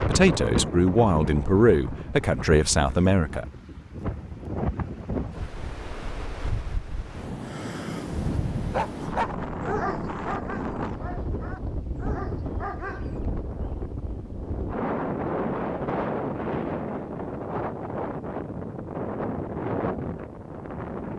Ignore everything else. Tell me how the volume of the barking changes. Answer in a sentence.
The loudness of the barking goes down, then up.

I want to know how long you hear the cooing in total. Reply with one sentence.
The cooing can't be heard in this clip.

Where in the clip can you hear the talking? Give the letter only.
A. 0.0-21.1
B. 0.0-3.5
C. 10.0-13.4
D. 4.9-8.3
B.